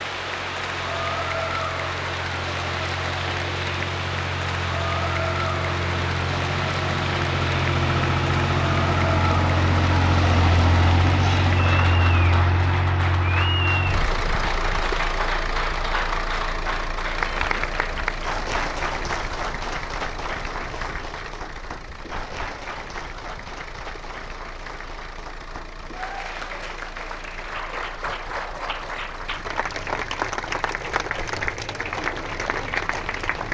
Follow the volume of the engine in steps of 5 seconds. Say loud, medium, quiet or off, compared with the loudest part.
medium, loud, loud, medium, quiet, quiet, quiet.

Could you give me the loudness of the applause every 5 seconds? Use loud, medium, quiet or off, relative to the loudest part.
loud, loud, loud, loud, medium, medium, loud.